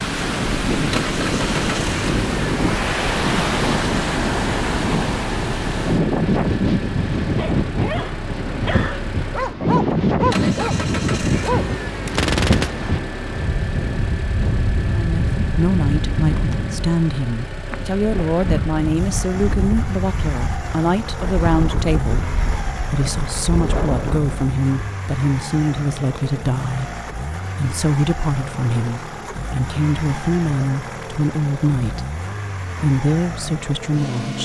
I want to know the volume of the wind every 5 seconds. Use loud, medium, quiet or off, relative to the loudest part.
loud, loud, loud, medium, medium, off, off.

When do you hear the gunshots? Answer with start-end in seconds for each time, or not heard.
12.1-13.0.